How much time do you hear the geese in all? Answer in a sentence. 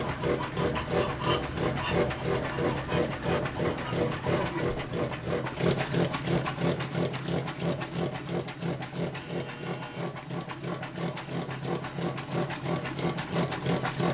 You can hear the geese for 5 seconds altogether.